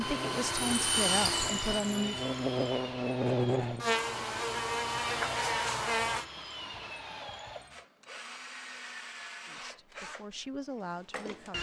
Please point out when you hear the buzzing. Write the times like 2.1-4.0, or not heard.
0.0-6.2.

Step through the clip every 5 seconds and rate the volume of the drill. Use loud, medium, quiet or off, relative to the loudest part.
loud, medium, medium.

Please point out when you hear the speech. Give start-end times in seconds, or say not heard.
0.0-2.3, 9.4-11.5.